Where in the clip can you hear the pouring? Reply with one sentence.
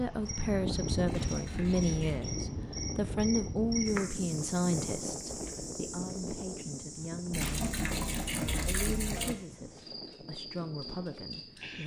You can hear the pouring from 1.1 to 2.4 s and from 7.3 to 9.3 s.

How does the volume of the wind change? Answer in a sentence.
The volume of the wind goes down.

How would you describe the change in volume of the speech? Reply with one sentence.
The loudness of the speech goes down.